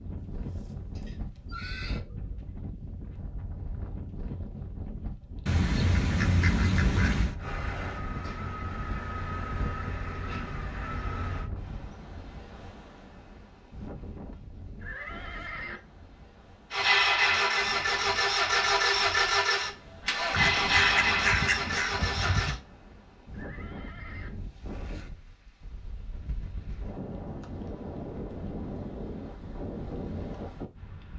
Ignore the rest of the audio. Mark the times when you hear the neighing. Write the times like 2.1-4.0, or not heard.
0.3-2.0, 14.8-15.8, 23.3-24.3.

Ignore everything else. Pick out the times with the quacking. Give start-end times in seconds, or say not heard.
5.5-7.3, 20.3-22.6.